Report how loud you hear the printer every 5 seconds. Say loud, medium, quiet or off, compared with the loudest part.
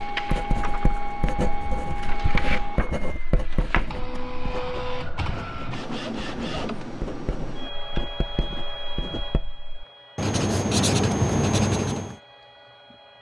loud, loud, quiet.